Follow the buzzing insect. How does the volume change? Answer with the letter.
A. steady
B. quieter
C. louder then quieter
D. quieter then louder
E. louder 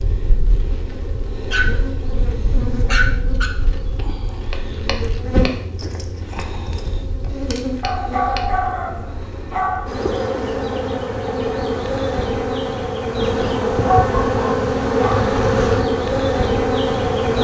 E.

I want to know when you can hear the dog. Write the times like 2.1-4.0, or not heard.
1.4-3.5, 7.8-9.8, 13.8-15.3.